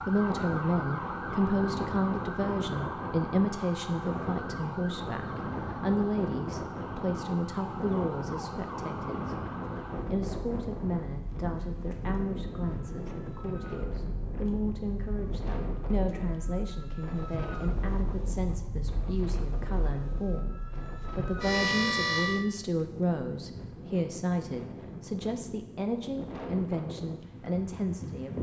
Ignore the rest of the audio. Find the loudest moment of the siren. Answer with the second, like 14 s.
22 s.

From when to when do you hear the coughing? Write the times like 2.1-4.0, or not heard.
not heard.